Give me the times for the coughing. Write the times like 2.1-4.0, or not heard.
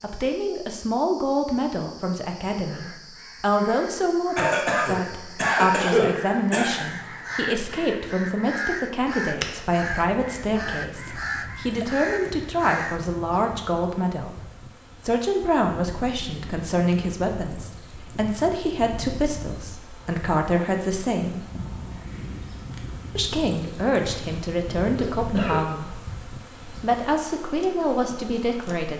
4.3-6.8, 24.9-25.6.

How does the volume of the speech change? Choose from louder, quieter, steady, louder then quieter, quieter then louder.
steady.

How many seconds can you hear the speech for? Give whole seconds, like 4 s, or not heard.
27 s.